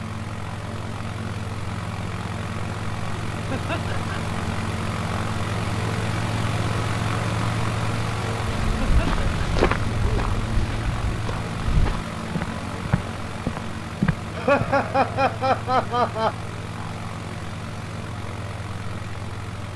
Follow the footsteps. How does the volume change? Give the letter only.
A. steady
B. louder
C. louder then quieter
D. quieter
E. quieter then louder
E.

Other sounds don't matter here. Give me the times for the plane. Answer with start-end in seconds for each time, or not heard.
0.0-19.7.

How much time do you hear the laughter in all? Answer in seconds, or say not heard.
3 s.